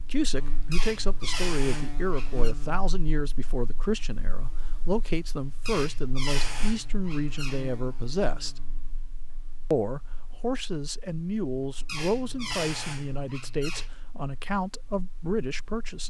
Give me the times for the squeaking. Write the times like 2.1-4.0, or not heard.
0.7-2.5, 5.7-7.7, 11.8-13.9.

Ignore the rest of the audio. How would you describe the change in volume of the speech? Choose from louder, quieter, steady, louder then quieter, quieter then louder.
steady.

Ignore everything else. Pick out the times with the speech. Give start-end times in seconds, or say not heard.
0.1-8.6, 9.7-16.0.